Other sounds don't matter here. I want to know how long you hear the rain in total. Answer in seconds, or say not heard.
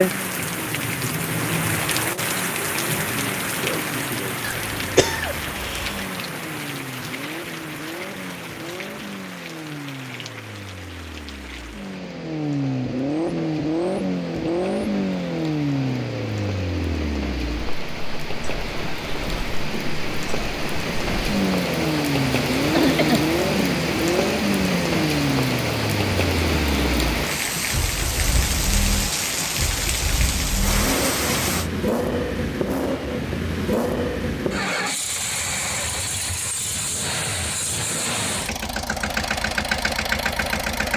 32 s.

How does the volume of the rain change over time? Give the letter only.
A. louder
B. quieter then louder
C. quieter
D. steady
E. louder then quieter
B.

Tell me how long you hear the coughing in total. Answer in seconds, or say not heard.
2 s.